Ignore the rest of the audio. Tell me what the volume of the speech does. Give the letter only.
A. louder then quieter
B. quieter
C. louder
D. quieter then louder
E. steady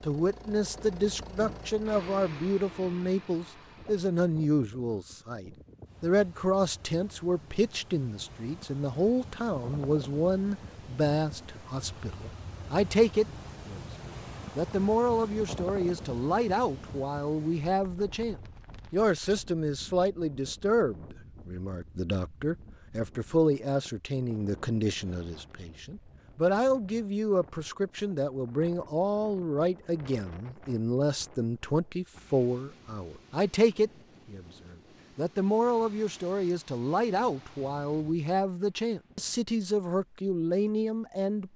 E.